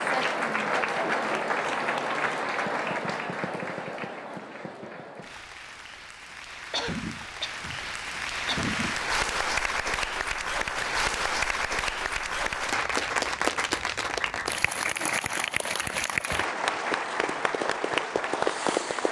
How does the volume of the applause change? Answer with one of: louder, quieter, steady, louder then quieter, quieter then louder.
quieter then louder.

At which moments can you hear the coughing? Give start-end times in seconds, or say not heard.
6.7-8.9.